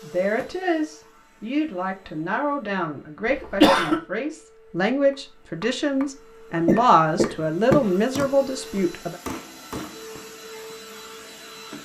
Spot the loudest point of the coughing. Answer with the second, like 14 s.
4 s.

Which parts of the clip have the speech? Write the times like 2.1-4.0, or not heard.
0.0-9.2.